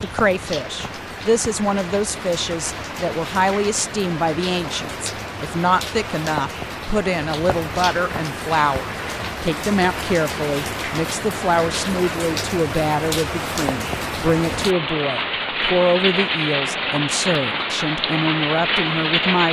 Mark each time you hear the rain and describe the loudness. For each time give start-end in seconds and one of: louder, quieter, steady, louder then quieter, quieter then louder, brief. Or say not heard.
0.0-19.4 louder.